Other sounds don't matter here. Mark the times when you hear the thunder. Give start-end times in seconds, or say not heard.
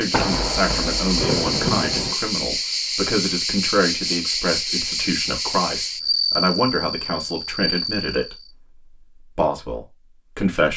0.1-2.1.